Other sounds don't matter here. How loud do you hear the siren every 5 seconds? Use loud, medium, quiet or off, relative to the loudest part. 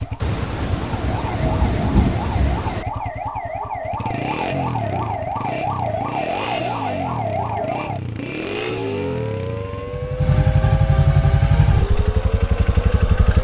loud, loud, medium.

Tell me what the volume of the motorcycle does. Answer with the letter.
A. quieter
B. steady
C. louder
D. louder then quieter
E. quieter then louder
C.